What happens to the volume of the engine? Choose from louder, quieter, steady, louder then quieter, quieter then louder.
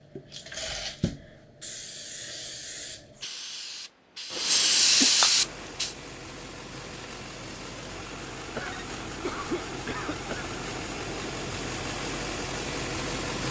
louder.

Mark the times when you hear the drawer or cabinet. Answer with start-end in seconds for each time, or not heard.
not heard.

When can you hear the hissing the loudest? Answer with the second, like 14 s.
5 s.